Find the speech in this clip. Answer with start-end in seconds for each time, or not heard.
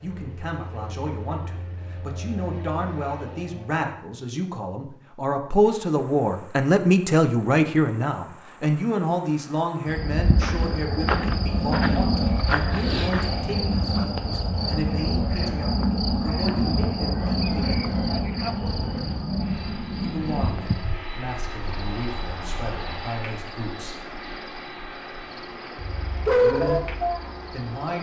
0.0-18.0, 19.9-24.1, 26.4-27.9.